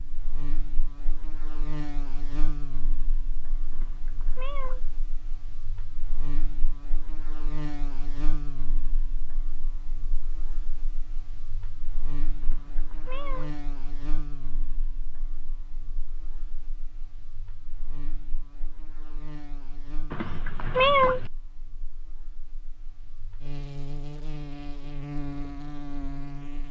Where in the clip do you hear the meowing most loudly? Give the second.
21 s.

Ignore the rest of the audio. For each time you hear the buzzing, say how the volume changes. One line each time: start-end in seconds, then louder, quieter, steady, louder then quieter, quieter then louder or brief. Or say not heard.
0.0-26.6 quieter then louder.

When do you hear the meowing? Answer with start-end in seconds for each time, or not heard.
3.7-4.9, 12.4-13.6, 20.1-21.3.